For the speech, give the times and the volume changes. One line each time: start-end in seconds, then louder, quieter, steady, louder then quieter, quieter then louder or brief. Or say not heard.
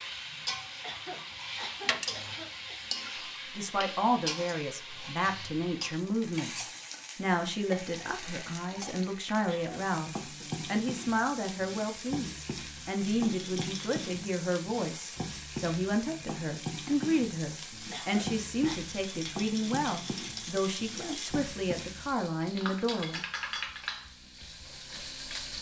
3.5-23.2 steady.